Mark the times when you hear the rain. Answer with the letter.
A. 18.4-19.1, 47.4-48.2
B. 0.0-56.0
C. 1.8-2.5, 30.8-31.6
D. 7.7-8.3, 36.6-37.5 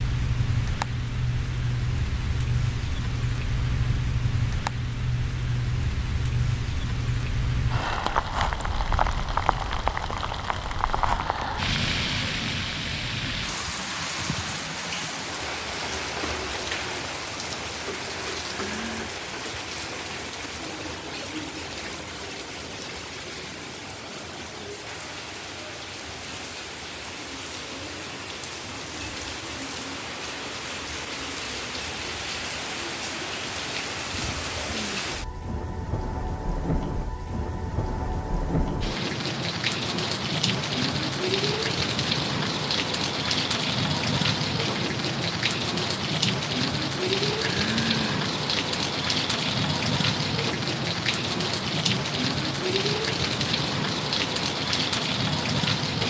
B.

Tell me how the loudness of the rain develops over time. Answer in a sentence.
The volume of the rain goes down, then up.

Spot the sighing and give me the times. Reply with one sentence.
The sighing can be heard from 18.4 to 19.1 s and from 47.4 to 48.2 s.